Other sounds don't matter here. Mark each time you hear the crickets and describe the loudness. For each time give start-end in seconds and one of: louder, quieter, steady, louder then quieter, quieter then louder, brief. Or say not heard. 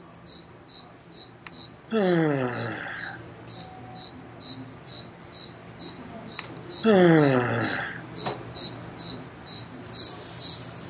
0.0-10.8 louder.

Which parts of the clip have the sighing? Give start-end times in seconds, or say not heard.
1.4-3.2, 6.3-8.0.